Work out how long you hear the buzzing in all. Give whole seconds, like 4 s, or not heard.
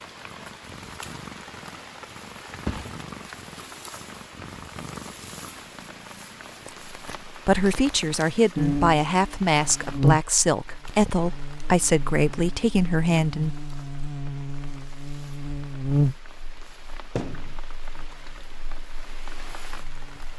12 s.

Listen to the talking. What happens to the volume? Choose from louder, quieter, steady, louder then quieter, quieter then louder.
steady.